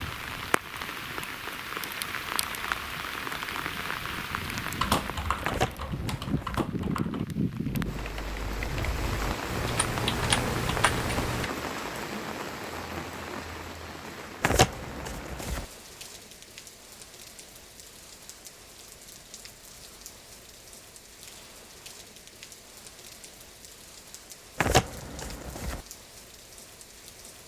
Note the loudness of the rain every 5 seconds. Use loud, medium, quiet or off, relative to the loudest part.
loud, loud, loud, quiet, quiet, quiet.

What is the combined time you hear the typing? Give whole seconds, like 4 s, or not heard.
7 s.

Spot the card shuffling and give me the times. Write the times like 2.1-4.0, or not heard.
5.5-6.7, 14.4-15.7, 24.6-25.8.